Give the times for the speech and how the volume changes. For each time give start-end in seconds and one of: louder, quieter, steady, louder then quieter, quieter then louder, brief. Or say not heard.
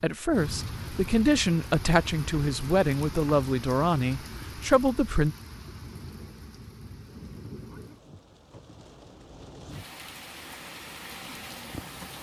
0.0-5.3 steady.